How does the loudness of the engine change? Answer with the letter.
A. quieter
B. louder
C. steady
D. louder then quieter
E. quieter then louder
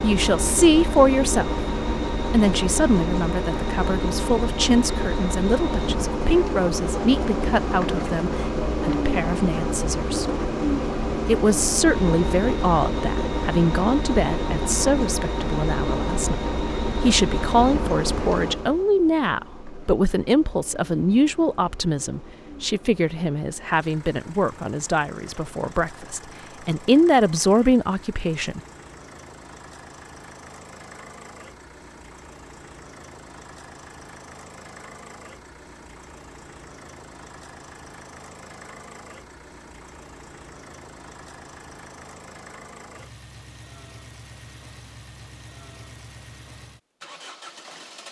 A.